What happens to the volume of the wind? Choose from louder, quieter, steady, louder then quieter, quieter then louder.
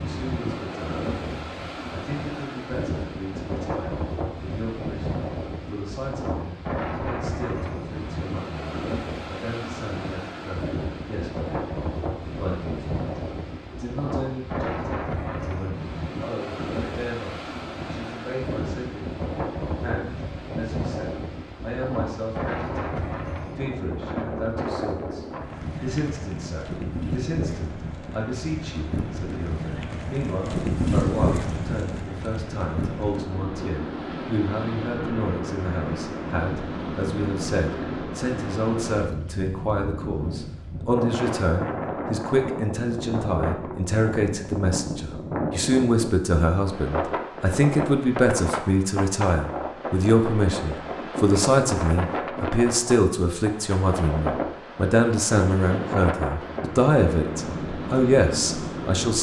steady.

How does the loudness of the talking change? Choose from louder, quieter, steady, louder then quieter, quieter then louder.
louder.